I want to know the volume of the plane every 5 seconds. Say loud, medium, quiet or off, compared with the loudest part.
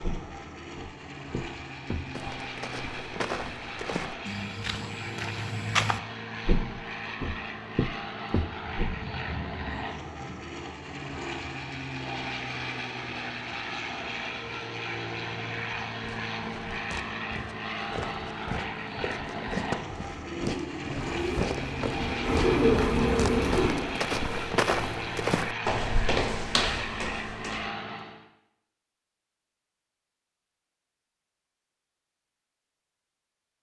medium, loud, loud, loud, loud, loud, off.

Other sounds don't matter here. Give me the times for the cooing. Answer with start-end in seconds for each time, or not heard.
20.1-23.9.